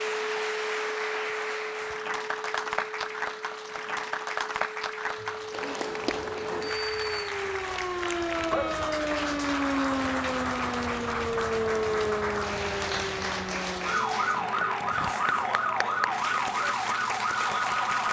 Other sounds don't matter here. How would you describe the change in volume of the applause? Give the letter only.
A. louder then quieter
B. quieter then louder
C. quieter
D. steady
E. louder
D.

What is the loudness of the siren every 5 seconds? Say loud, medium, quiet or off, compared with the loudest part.
medium, loud, loud, loud.